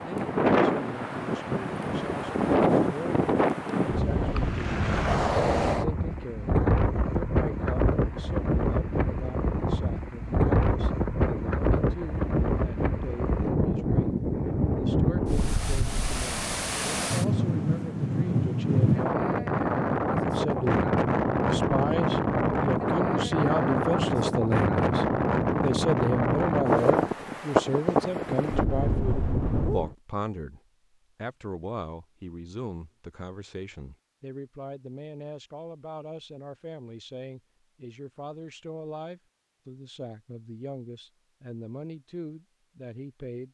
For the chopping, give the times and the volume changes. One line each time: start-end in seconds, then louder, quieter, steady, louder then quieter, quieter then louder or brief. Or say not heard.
not heard.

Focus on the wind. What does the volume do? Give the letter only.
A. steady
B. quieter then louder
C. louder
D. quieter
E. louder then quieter
A.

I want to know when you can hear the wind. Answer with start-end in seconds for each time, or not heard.
0.0-29.9.